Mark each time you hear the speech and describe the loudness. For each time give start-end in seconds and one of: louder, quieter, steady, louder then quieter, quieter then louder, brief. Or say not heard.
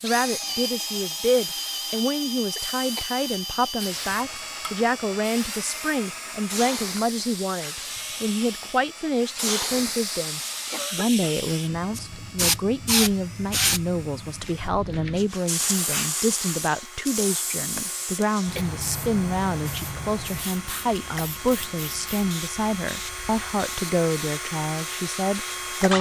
0.0-25.9 steady.